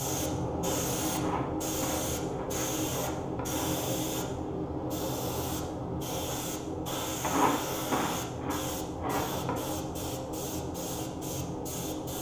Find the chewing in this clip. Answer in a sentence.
You can hear the chewing from 1.1 to 3.8 s and from 7.2 to 9.7 s.